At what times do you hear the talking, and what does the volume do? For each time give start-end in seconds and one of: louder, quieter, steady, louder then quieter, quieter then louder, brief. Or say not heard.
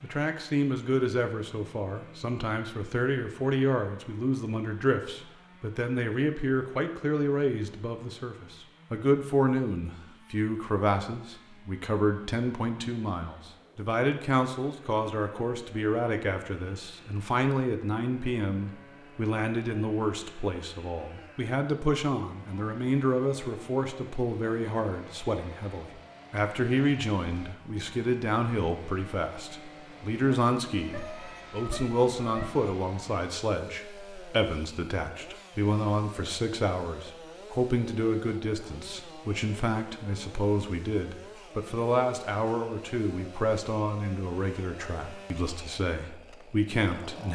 0.0-47.3 steady.